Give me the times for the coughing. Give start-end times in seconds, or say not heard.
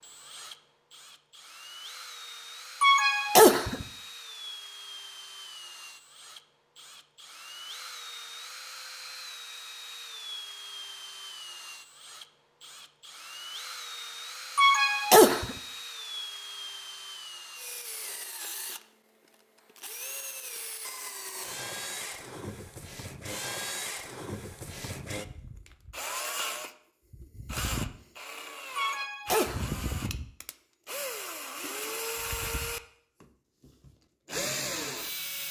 2.8-3.9, 14.6-15.6, 28.8-29.8.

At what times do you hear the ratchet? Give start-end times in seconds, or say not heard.
not heard.